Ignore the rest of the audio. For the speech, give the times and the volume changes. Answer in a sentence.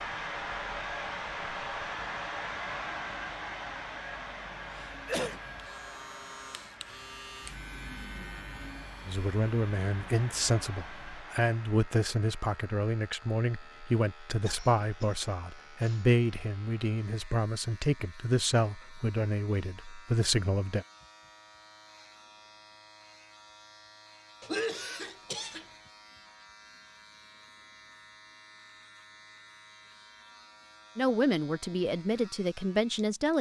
The speech can be heard from 9.1 to 20.9 s, at a steady volume; and briefly from 30.9 to 33.3 s.